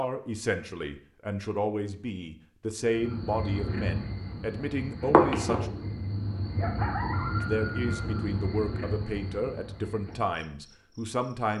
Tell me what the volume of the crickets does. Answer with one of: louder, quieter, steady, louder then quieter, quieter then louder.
louder then quieter.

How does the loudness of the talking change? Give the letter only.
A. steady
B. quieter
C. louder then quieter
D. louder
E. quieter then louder
A.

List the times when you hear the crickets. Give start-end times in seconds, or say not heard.
2.9-11.5.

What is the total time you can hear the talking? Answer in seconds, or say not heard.
10 s.